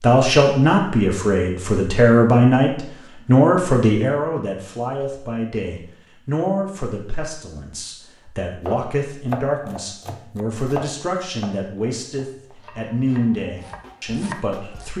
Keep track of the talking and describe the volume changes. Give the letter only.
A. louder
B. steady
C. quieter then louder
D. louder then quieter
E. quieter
E.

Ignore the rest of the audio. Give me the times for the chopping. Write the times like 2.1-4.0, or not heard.
8.7-14.9.